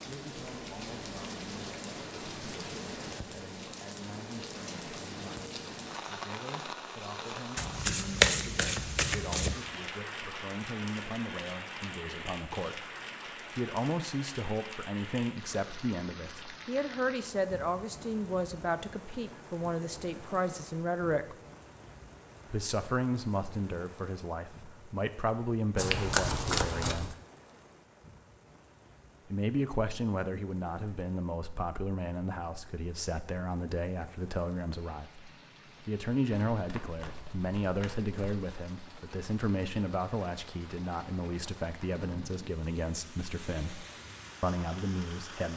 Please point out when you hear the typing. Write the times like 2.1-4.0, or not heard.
not heard.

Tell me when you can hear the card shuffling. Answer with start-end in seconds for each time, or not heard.
7.5-9.6, 25.8-27.1, 36.3-38.5.